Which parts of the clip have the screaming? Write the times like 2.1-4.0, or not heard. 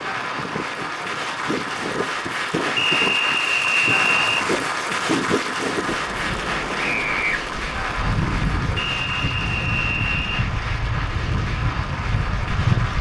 6.8-7.4.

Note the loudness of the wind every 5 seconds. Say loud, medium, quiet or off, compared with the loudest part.
medium, loud, loud.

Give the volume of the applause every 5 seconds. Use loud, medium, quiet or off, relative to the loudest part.
loud, loud, medium.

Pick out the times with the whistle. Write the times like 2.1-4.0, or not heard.
2.8-4.5, 8.8-10.4.